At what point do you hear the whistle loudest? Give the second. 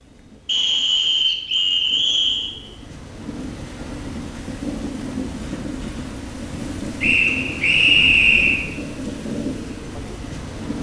8 s.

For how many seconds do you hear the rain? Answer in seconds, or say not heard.
11 s.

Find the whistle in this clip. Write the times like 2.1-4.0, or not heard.
0.5-2.5, 7.0-8.7.